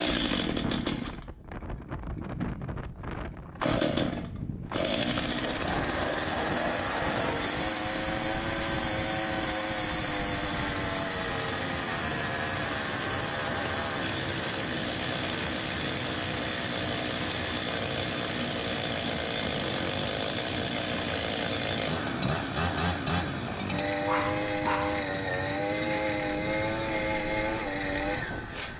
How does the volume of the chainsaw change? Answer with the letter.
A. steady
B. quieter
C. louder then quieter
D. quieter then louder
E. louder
A.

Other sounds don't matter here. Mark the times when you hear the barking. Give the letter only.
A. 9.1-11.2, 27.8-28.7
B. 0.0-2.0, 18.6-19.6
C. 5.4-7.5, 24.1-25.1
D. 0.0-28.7
C.